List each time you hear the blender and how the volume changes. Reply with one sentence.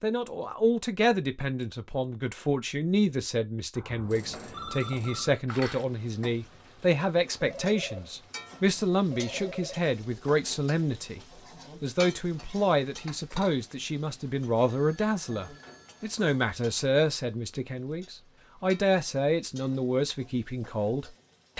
The blender can't be heard in this clip.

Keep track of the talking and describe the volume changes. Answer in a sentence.
The loudness of the talking stays about the same.